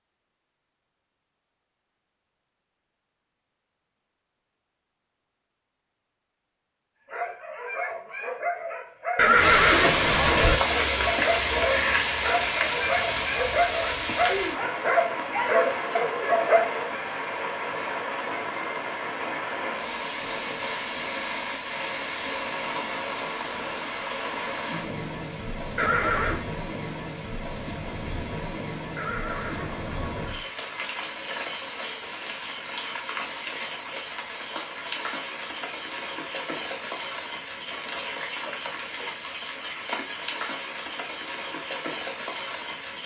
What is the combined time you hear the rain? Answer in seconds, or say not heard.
34 s.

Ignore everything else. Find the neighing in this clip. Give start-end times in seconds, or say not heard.
9.2-10.6, 25.8-26.4, 28.9-30.4.